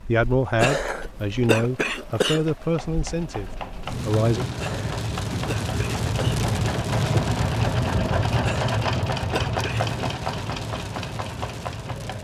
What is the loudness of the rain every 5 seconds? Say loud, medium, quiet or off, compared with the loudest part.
medium, loud, medium.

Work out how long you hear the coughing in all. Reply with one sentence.
The coughing can be heard for 5 seconds in total.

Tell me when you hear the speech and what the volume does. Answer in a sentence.
You can hear the speech from 0.1 to 4.5 s, getting quieter.